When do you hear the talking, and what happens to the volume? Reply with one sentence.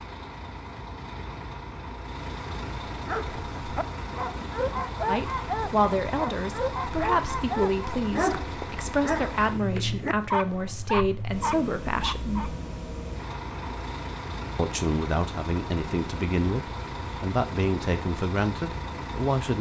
The talking can be heard from 5.0 to 12.6 s, at a steady volume; and from 14.6 to 19.5 s, at a steady volume.